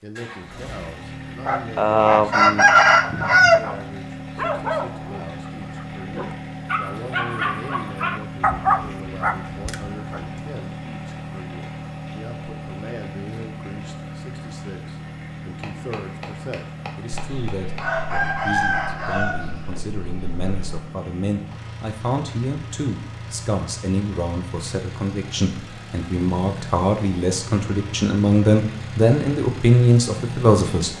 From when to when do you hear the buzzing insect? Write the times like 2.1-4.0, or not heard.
not heard.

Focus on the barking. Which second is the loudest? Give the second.
9 s.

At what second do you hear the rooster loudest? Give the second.
3 s.